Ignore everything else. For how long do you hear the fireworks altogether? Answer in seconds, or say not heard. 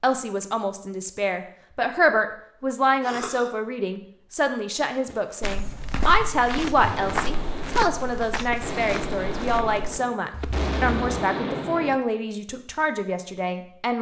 7 s.